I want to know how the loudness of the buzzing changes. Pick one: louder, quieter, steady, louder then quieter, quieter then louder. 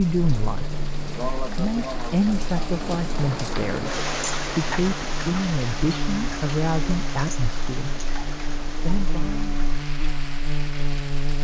louder.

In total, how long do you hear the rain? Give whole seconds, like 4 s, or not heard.
11 s.